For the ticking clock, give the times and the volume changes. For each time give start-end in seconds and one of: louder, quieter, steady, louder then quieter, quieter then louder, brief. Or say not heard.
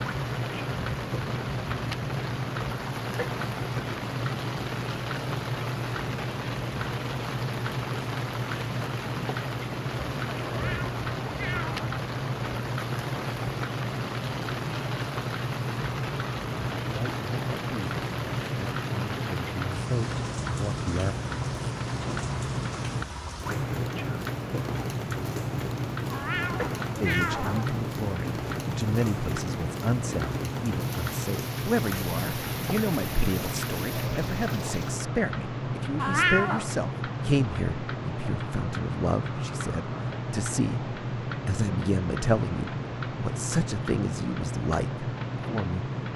0.0-46.1 steady.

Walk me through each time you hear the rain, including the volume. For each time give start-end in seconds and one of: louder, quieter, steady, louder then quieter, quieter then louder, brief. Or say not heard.
0.0-35.0 steady.